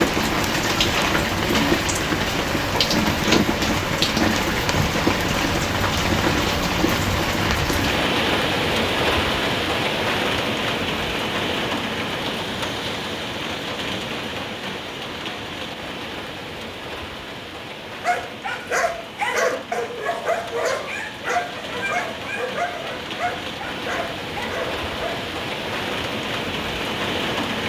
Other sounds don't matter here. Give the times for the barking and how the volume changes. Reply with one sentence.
The barking can be heard from 18.0 to 25.2 s, getting quieter.